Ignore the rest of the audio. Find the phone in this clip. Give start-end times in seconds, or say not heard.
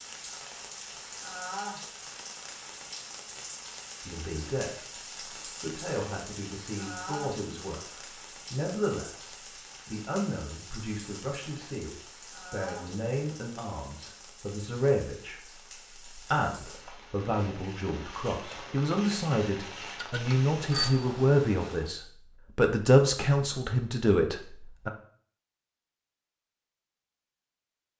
19.9-20.9.